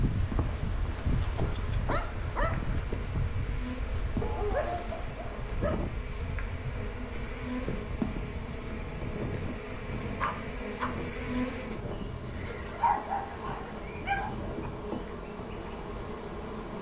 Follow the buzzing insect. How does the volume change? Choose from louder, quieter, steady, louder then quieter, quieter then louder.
louder.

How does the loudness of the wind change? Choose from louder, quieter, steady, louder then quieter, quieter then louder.
quieter.